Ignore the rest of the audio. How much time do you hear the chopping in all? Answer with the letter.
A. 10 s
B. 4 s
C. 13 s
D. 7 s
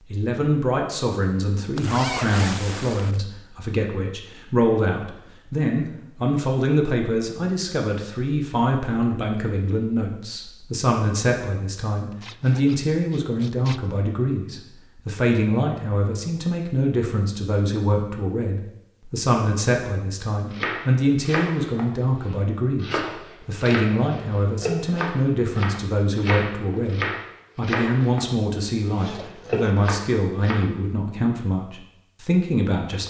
A.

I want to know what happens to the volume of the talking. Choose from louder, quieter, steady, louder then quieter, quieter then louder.
steady.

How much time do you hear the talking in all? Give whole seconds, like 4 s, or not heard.
33 s.